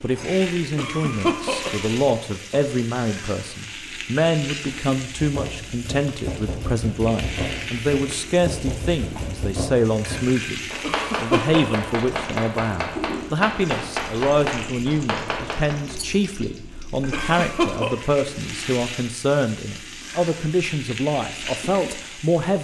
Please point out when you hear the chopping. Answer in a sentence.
The chopping can be heard from 5.2 to 15.9 s.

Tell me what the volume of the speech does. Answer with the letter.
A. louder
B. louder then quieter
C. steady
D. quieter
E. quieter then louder
C.